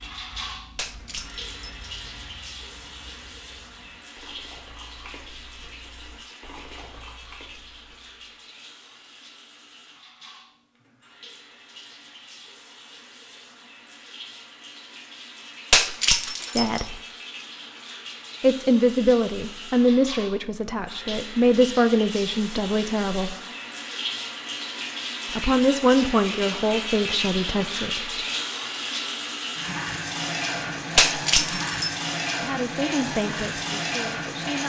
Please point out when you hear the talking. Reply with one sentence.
You can hear the talking from 16.6 to 17.0 s, from 18.4 to 23.4 s, from 25.4 to 28.2 s and from 32.4 to 34.6 s.